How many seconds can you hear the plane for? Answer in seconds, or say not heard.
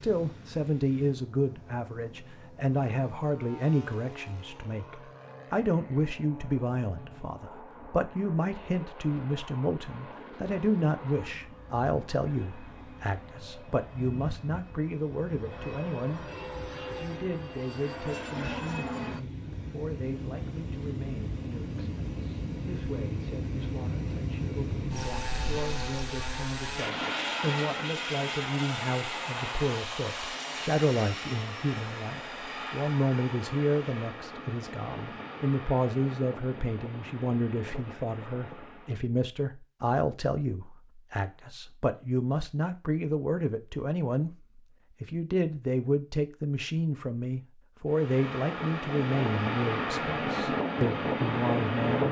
43 s.